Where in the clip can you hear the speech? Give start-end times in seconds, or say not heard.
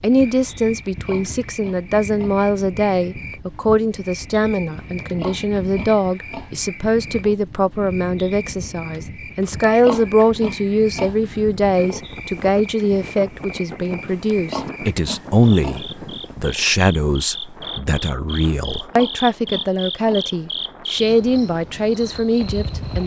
0.0-23.0.